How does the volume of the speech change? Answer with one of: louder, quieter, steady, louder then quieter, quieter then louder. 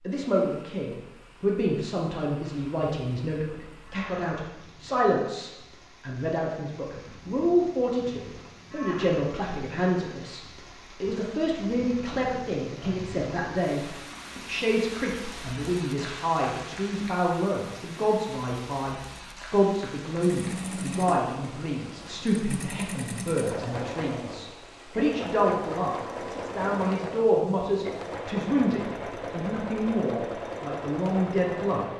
steady.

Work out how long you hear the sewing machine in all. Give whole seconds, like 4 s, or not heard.
12 s.